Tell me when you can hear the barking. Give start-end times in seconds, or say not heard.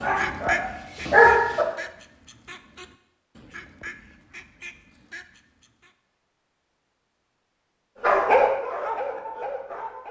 0.0-1.6, 8.0-10.0.